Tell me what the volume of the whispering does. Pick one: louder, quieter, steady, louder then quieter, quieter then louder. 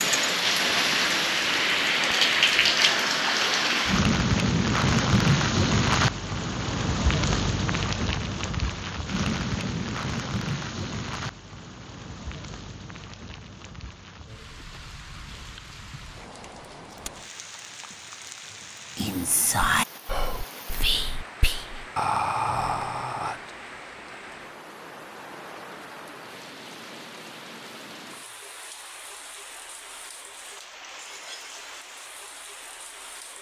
quieter then louder.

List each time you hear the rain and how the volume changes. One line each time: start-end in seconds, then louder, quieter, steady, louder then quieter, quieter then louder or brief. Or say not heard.
0.0-33.3 quieter.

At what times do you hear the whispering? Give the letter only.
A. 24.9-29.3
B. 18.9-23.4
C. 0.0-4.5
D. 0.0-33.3
B.